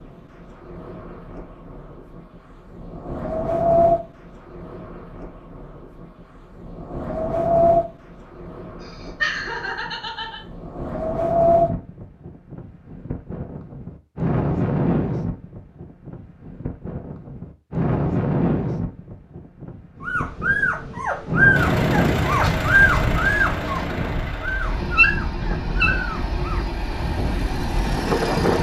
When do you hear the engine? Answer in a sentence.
You can hear the engine from 21.5 to 28.5 s.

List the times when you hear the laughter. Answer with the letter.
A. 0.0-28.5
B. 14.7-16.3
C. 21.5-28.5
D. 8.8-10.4
D.